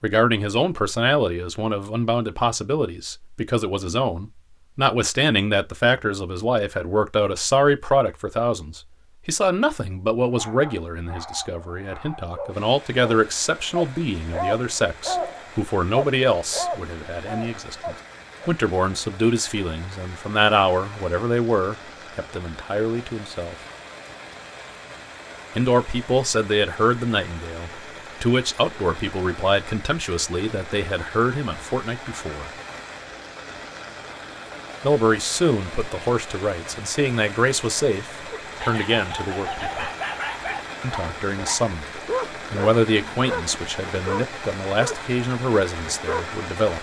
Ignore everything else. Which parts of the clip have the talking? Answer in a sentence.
You can hear the talking from 0.0 to 23.6 s, from 25.6 to 32.5 s, from 34.8 to 39.9 s and from 40.8 to 46.7 s.